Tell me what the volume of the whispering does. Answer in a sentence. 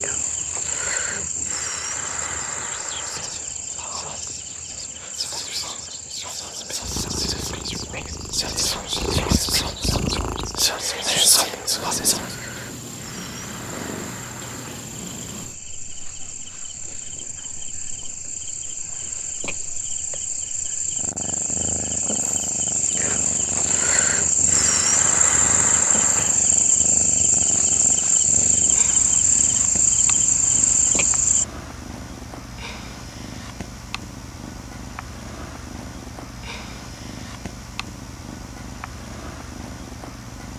The volume of the whispering goes up.